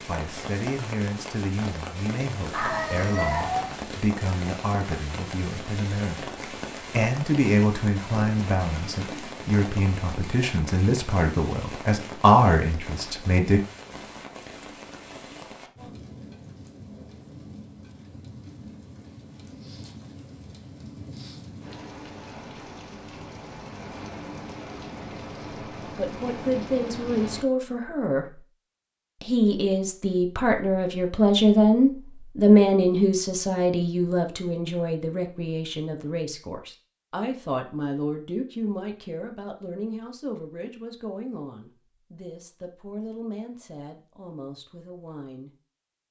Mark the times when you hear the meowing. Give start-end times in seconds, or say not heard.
2.5-3.8.